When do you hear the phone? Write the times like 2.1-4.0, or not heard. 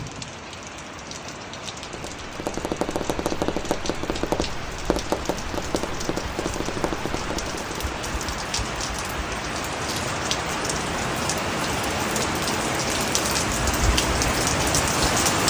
not heard.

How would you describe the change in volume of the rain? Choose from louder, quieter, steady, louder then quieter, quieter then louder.
louder.